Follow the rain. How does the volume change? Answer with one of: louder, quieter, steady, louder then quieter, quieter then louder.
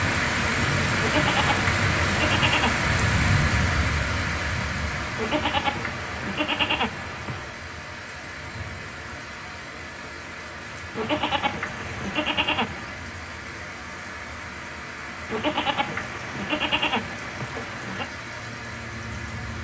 quieter.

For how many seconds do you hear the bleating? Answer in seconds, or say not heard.
9 s.